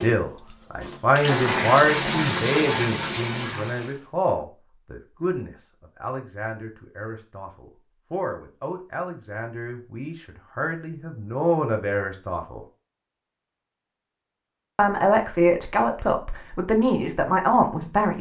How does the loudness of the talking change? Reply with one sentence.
The volume of the talking goes down, then up.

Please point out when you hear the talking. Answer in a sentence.
The talking can be heard from 0.0 to 12.6 s and from 14.8 to 18.1 s.